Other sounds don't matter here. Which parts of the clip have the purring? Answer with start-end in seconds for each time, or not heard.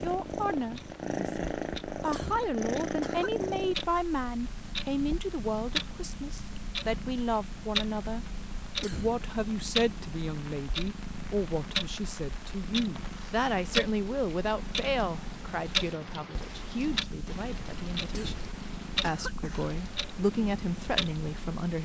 0.0-21.6.